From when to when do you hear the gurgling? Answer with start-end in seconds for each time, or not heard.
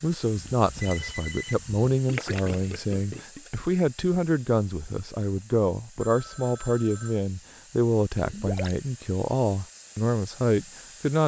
2.0-3.6, 8.2-8.8.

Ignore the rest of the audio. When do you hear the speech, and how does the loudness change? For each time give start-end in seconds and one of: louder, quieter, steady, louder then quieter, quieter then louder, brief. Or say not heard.
0.0-11.2 steady.